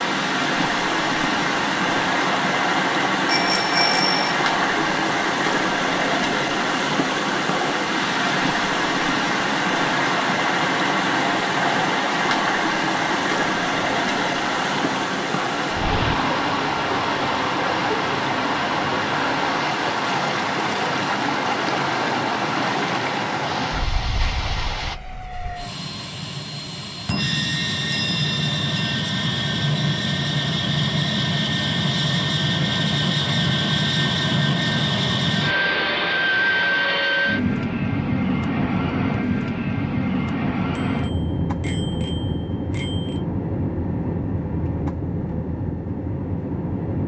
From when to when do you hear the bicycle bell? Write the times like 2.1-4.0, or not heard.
3.2-4.3, 27.1-28.9, 40.8-43.2.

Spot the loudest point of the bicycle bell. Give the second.
4 s.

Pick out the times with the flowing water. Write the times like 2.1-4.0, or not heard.
0.0-24.9.